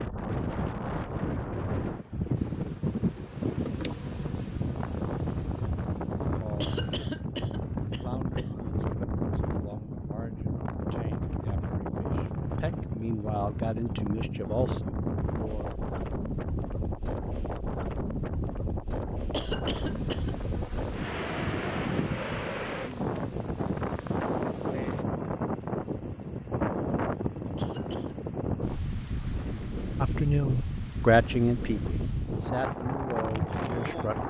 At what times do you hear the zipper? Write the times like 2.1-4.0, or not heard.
not heard.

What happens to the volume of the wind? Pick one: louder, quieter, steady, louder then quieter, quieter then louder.
steady.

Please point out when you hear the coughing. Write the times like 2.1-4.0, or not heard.
6.6-8.4, 19.3-20.3, 27.6-28.1.